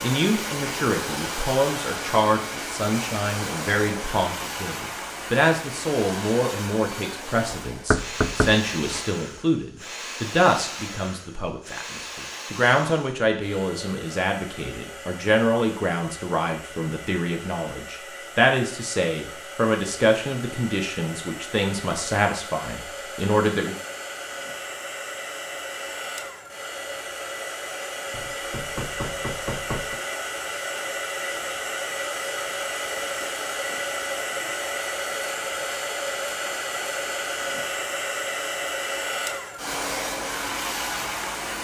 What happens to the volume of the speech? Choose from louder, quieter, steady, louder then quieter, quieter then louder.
steady.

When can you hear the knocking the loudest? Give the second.
8 s.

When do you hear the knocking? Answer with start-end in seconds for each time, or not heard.
7.5-9.1, 28.1-30.0.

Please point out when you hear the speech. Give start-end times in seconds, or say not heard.
0.0-23.8.